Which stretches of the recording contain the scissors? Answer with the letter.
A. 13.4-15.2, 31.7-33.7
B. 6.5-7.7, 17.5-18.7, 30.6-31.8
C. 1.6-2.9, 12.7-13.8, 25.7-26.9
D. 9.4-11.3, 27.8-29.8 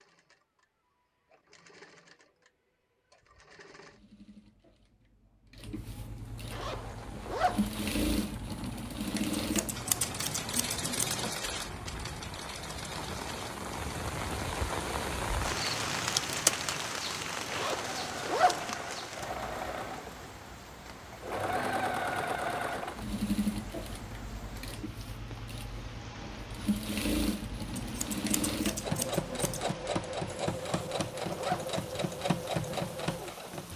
D.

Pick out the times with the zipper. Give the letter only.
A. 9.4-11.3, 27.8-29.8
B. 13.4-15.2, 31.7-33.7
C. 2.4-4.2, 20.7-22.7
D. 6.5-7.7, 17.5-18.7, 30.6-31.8
D.